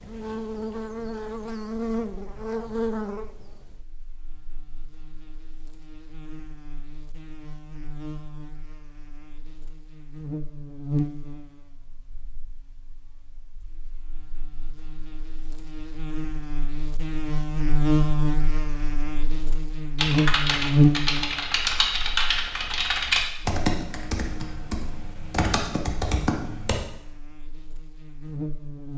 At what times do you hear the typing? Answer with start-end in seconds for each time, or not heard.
19.9-26.8.